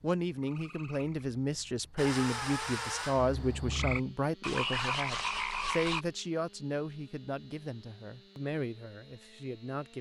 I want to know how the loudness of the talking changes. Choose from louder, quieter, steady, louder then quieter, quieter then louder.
quieter.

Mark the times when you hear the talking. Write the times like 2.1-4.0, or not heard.
0.0-9.9.